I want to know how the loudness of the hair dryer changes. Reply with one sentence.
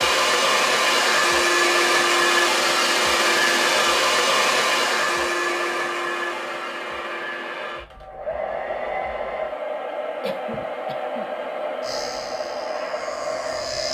The volume of the hair dryer goes down.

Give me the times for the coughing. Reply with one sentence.
The coughing can be heard from 10.2 to 11.3 s.